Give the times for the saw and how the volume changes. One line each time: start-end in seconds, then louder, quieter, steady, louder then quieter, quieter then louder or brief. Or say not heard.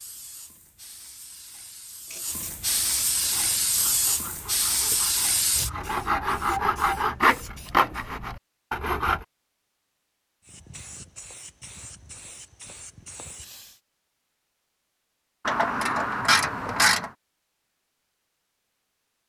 3.2-9.2 louder then quieter.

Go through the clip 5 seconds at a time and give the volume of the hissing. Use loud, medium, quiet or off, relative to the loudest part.
loud, loud, quiet, off.